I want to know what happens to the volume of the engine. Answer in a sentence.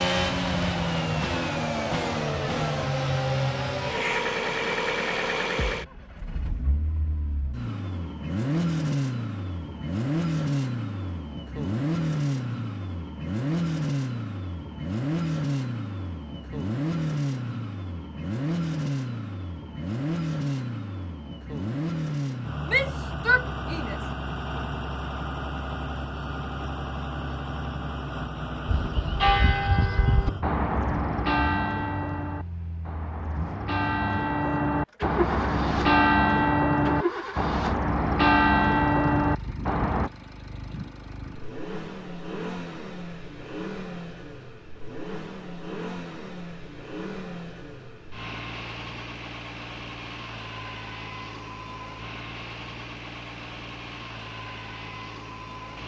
The volume of the engine goes down.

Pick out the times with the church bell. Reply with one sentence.
You can hear the church bell from 28.6 to 40.1 s.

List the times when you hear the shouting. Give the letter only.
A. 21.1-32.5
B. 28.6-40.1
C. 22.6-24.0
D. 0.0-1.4
C.